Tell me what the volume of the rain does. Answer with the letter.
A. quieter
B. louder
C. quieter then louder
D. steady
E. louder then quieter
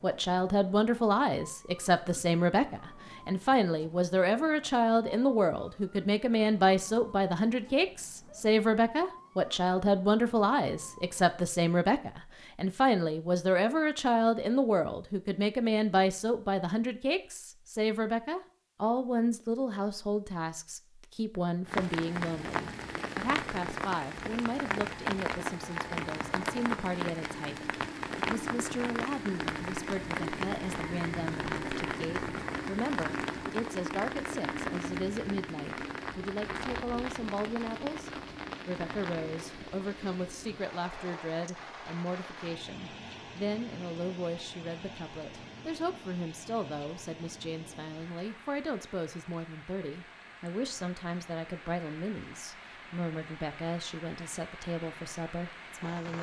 A.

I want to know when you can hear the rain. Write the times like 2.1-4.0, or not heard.
21.6-56.1.